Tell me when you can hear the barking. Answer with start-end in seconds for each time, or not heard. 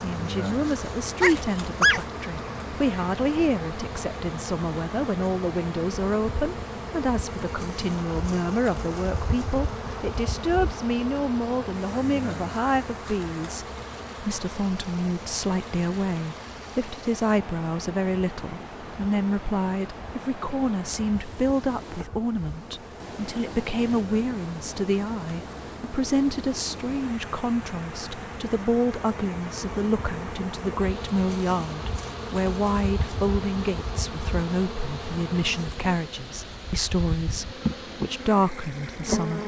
1.2-3.1.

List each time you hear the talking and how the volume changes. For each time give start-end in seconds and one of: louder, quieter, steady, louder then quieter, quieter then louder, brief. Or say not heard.
0.0-39.4 steady.